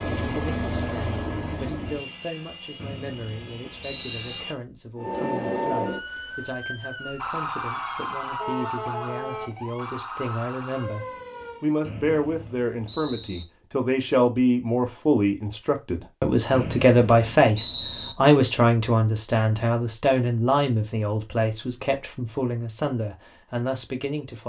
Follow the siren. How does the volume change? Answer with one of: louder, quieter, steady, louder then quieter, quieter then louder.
quieter.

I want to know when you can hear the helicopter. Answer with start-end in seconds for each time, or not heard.
0.0-4.5.